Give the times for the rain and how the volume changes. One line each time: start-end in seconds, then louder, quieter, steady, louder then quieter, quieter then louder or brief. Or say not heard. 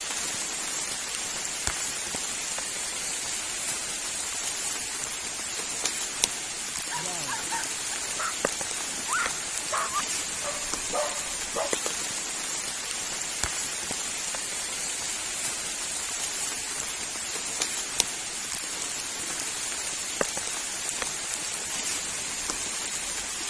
0.0-23.4 steady.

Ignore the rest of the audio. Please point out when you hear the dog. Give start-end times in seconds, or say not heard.
6.8-11.8.